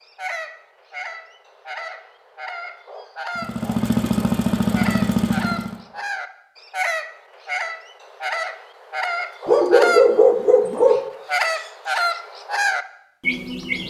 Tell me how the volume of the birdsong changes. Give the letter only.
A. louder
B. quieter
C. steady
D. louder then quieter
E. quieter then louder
A.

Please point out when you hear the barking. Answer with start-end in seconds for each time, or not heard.
9.4-11.0.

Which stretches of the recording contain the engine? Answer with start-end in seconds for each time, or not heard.
3.4-5.8.